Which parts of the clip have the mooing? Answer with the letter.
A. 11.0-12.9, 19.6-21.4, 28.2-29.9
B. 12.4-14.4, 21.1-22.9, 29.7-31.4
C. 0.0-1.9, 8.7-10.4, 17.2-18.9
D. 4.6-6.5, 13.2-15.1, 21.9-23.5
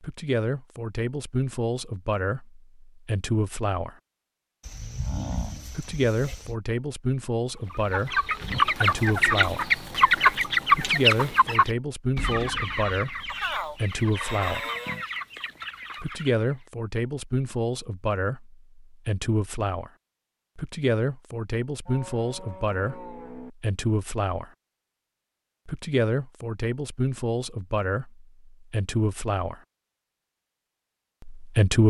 D.